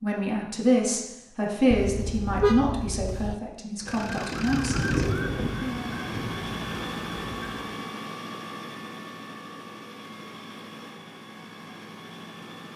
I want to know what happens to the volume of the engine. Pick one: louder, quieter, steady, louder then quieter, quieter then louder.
quieter.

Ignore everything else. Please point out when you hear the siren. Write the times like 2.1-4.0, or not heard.
4.0-7.8.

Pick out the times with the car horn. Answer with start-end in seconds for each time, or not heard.
1.7-3.4.